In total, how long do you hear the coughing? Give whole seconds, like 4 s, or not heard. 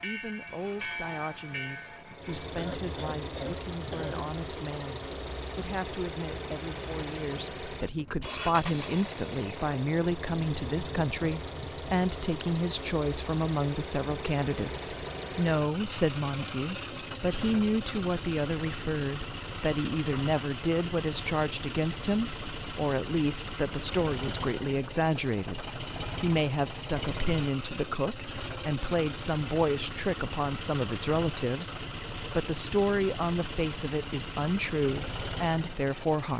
2 s.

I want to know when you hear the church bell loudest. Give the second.
1 s.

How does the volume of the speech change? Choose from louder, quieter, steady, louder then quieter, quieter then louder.
louder.